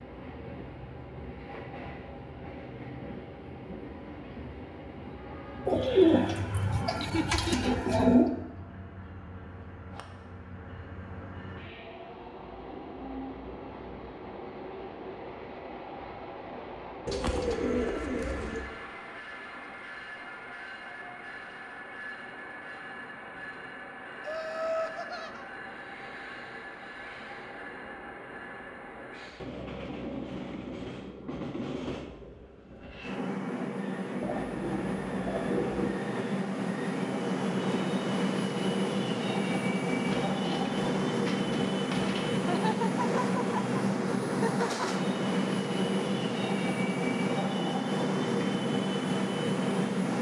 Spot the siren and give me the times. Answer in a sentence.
The siren can't be heard in this clip.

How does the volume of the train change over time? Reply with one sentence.
The volume of the train goes up.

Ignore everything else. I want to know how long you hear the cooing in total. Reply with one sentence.
The cooing can be heard for 8 seconds in total.